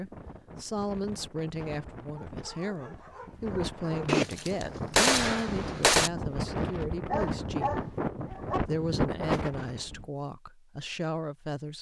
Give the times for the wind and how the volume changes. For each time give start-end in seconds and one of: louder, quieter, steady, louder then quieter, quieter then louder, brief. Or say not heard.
0.0-10.1 louder.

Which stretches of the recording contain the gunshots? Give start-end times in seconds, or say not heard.
4.0-6.1.